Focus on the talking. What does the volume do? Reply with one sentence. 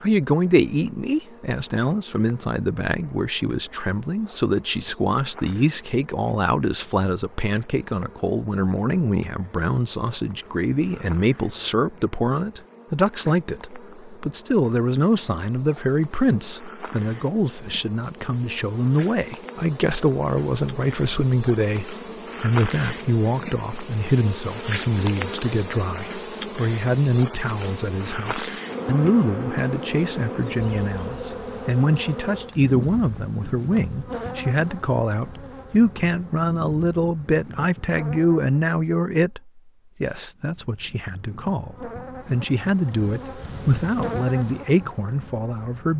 The loudness of the talking stays about the same.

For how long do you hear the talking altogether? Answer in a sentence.
The talking can be heard for 46 seconds in total.